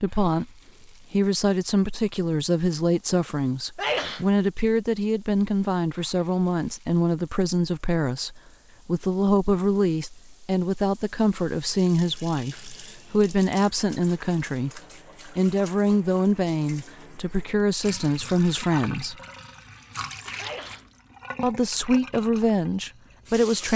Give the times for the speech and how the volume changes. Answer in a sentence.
The speech can be heard from 0.0 to 19.1 s, at a steady volume; and briefly from 21.4 to 23.7 s.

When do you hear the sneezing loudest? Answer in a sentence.
The loudest moment of the sneezing is at 4 seconds.